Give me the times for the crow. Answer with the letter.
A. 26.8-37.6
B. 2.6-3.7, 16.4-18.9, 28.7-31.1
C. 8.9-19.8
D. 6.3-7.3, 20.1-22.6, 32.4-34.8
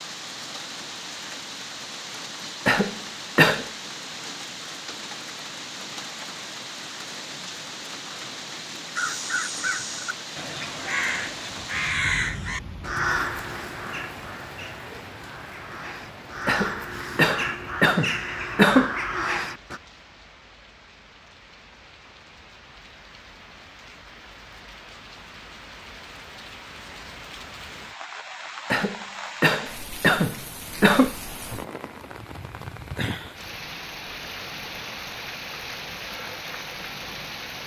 C.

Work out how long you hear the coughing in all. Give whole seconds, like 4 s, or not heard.
6 s.